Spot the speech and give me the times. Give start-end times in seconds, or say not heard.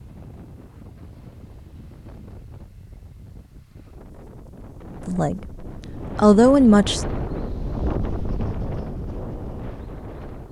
5.0-5.5, 6.2-7.0.